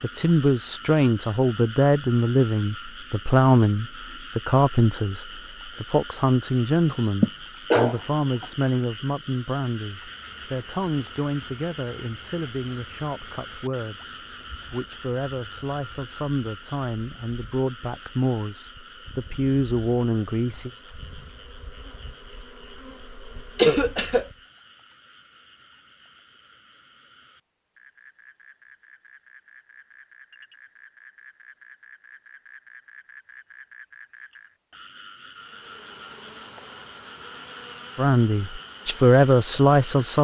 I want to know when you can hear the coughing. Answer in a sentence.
You can hear the coughing from 7.2 to 8.4 s and from 23.6 to 24.2 s.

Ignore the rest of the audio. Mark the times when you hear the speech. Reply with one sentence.
The speech can be heard from 0.0 to 20.7 s and from 38.0 to 40.1 s.